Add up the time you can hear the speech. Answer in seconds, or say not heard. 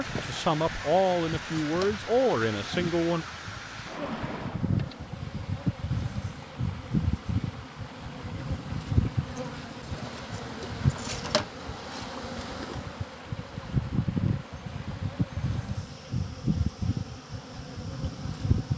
3 s.